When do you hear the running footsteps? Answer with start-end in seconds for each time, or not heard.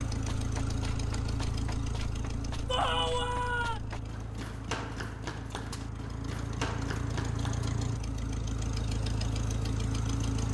0.1-7.8.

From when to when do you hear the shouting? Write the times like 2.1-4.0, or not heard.
2.6-3.8.